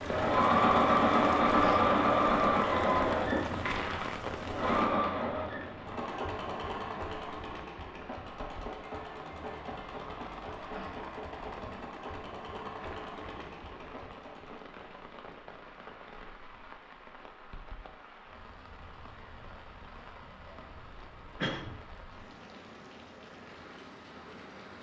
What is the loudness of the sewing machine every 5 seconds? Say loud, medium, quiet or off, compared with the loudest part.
loud, quiet, quiet, off, off.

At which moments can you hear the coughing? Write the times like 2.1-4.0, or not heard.
20.5-21.8.